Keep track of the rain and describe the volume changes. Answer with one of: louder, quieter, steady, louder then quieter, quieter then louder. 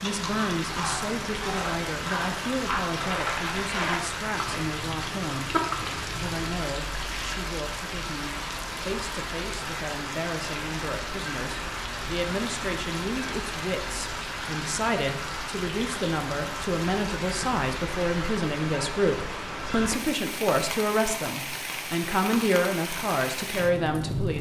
steady.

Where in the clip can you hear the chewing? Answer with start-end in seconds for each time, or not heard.
0.0-6.5.